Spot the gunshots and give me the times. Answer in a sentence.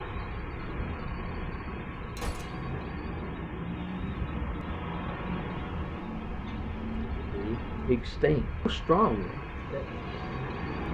You can hear the gunshots from 2.1 to 2.9 s.